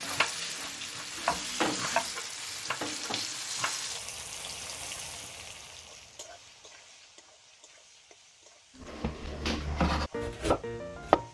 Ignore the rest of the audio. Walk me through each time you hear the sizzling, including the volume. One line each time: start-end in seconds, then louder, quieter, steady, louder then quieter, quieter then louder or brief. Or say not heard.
0.0-11.3 quieter.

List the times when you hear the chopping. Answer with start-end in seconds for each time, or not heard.
0.0-2.2, 8.9-11.3.